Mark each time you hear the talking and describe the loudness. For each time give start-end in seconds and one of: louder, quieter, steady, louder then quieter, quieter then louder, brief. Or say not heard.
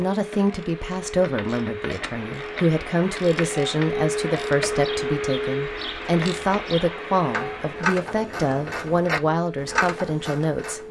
0.0-10.8 steady.